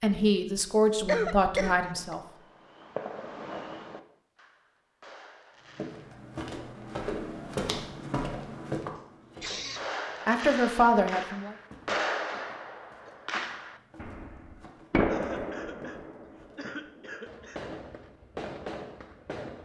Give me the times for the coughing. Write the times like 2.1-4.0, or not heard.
1.1-2.1, 9.3-9.8, 15.1-17.7.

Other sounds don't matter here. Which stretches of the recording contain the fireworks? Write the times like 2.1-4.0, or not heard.
2.0-6.1, 9.8-19.5.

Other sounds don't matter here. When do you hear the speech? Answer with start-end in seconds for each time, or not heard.
0.0-2.2, 10.2-11.6.